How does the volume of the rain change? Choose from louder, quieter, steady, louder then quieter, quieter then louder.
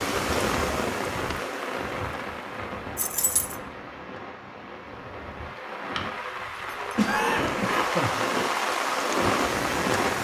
quieter then louder.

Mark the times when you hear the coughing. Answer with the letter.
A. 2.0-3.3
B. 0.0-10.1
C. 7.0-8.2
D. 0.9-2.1
C.